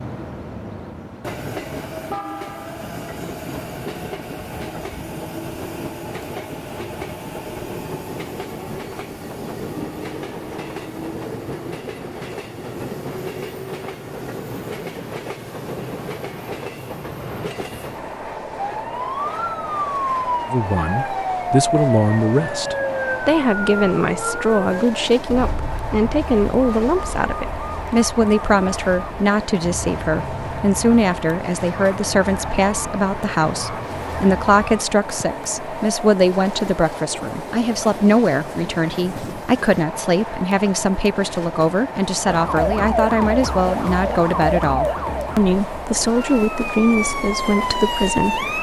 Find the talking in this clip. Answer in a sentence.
You can hear the talking from 20.5 to 48.5 s.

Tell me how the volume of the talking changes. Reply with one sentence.
The loudness of the talking stays about the same.